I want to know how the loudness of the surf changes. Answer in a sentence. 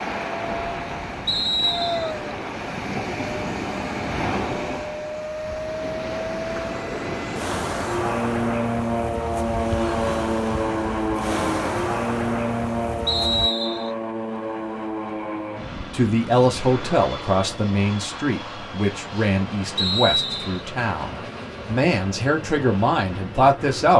The loudness of the surf stays about the same.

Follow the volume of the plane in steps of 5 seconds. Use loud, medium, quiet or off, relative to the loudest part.
medium, loud, loud, medium, medium.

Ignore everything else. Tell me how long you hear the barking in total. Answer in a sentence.
You can't hear the barking here.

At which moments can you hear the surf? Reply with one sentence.
You can hear the surf from 0.0 to 13.5 s.